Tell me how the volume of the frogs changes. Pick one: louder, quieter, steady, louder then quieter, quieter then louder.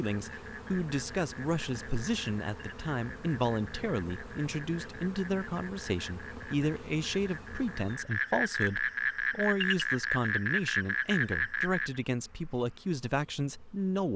louder.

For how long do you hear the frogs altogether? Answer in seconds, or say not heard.
12 s.